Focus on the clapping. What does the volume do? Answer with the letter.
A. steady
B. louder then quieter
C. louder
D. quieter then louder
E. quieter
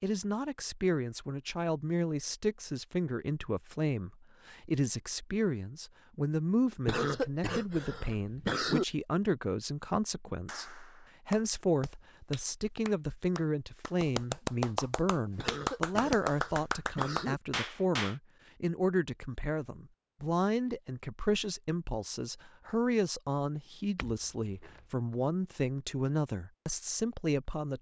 C.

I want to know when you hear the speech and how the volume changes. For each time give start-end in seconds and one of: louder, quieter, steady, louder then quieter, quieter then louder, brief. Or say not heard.
0.0-27.7 steady.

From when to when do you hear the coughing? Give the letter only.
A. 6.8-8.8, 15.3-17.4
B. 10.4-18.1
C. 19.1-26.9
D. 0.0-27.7
A.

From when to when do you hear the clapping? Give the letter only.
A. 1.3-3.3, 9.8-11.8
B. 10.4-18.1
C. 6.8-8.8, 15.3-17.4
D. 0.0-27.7
B.